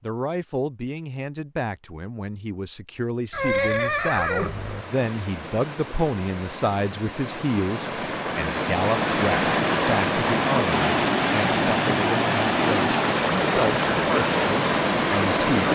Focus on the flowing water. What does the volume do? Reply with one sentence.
The volume of the flowing water goes up.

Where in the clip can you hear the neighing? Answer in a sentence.
You can hear the neighing from 3.3 to 4.8 s.